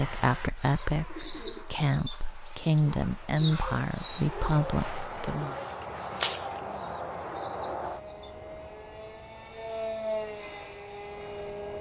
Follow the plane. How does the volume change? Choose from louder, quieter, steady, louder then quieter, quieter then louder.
louder.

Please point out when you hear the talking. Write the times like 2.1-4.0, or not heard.
0.0-5.5.